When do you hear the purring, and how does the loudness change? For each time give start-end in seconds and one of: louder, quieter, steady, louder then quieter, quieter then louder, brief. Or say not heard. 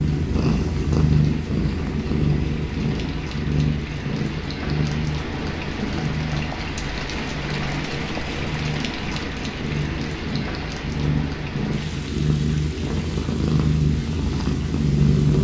0.0-15.3 quieter then louder.